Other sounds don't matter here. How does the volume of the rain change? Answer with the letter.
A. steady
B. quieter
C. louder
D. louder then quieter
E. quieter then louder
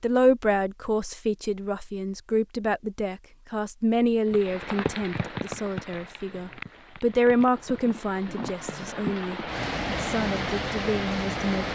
E.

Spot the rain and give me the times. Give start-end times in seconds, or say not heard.
4.3-11.7.